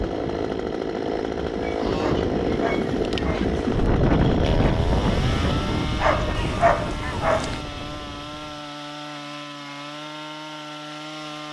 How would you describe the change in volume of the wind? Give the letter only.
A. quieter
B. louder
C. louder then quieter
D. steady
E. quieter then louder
C.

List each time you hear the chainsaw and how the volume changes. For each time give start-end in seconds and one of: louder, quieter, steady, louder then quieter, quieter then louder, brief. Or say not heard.
0.0-11.4 quieter.